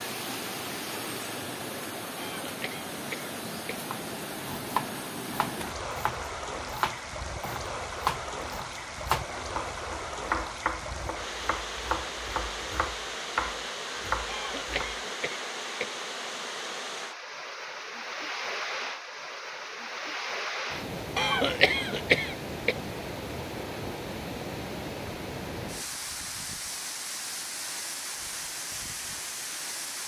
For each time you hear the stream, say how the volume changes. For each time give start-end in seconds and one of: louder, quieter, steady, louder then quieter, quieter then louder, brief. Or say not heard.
0.0-30.0 steady.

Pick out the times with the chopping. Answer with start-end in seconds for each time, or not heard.
3.8-14.9.